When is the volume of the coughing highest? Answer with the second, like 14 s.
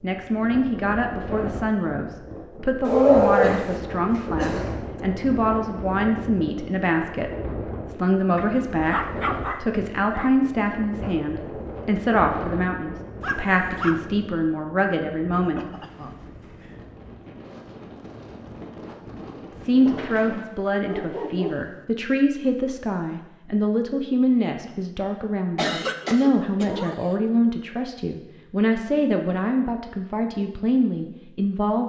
26 s.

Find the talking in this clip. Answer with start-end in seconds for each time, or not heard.
0.0-15.7, 19.6-31.8.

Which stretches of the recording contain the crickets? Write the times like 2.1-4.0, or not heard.
not heard.